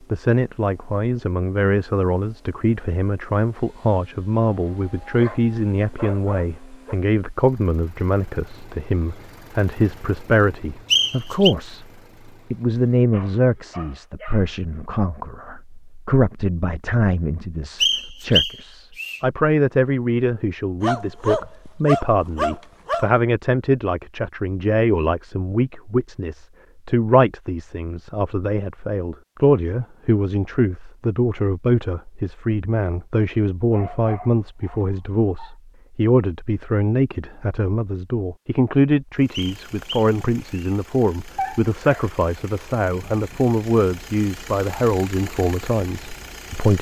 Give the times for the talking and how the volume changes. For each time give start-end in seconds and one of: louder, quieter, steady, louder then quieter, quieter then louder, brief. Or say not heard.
0.1-11.8 steady
12.5-46.7 steady.